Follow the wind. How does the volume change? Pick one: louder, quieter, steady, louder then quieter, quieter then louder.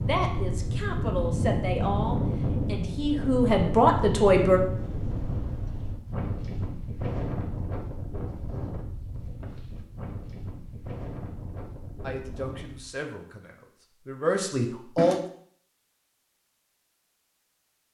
quieter.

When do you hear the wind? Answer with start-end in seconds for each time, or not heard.
0.0-13.0.